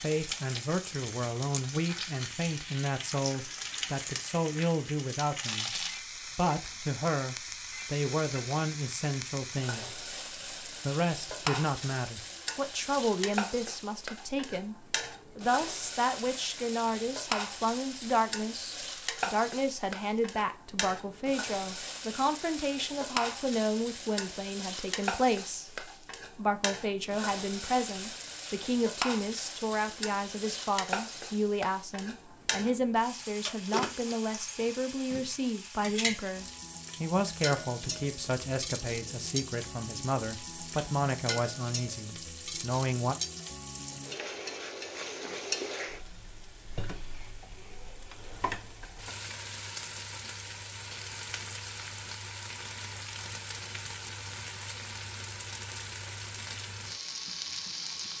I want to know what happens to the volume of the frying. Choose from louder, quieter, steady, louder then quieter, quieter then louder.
steady.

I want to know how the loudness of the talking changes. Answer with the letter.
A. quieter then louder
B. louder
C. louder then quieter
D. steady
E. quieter
D.